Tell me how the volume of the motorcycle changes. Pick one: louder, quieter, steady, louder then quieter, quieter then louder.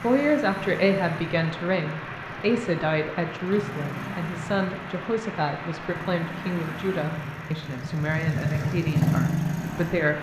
louder.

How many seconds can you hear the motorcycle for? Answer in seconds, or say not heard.
10 s.